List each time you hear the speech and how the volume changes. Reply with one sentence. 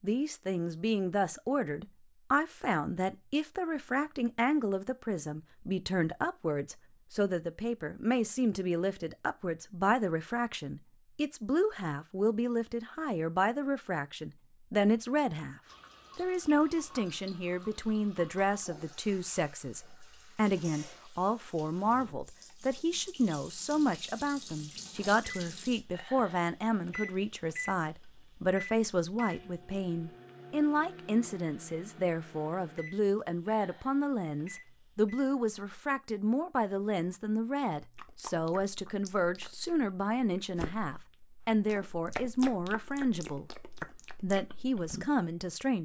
The speech can be heard from 0.0 to 45.7 s, at a steady volume.